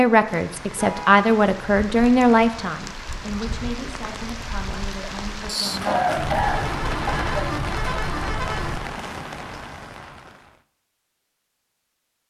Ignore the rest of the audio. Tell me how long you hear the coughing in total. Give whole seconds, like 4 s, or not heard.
2 s.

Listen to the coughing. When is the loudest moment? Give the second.
6 s.